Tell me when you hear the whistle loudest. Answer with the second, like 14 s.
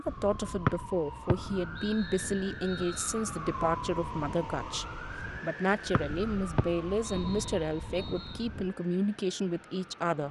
1 s.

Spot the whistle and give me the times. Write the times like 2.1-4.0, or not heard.
0.7-3.1, 5.9-8.4.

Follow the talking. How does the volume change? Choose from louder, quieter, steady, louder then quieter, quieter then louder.
steady.